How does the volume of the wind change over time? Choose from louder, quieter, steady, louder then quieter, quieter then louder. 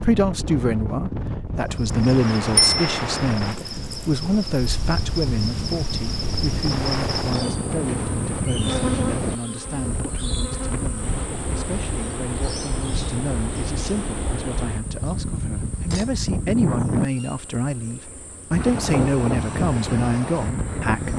steady.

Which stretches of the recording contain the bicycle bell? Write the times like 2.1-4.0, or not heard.
2.5-3.0.